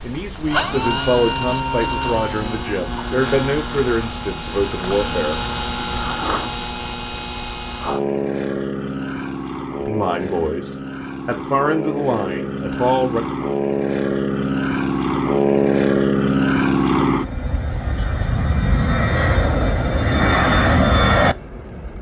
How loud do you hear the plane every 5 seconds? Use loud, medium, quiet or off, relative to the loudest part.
medium, medium, medium, loud, loud.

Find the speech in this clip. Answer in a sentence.
You can hear the speech from 0.0 to 5.4 s and from 9.8 to 13.2 s.